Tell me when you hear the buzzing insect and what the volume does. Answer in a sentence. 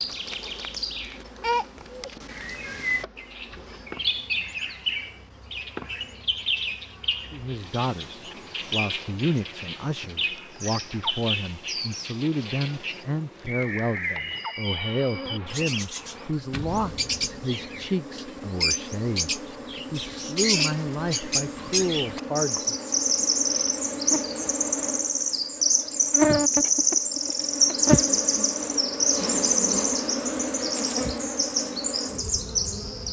You can hear the buzzing insect from 0.0 to 33.0 s, getting louder.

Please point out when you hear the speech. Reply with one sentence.
The speech can be heard from 7.3 to 22.8 s.